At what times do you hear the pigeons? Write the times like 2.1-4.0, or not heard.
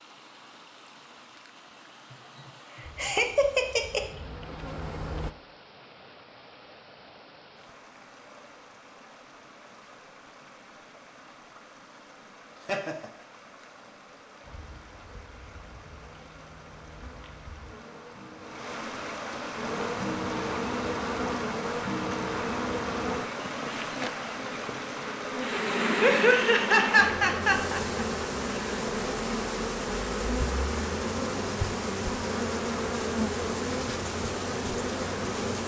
not heard.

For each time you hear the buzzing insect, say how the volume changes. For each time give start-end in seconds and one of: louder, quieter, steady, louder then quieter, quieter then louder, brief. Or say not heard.
2.8-5.3 brief
14.4-35.6 louder.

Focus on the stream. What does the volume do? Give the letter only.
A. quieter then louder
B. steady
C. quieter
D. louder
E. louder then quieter
D.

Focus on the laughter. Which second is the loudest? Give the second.
27 s.